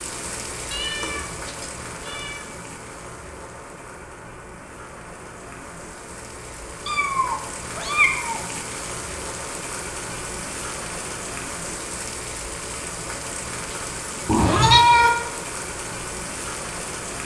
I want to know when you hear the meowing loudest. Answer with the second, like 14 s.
15 s.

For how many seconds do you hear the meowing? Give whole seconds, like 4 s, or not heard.
4 s.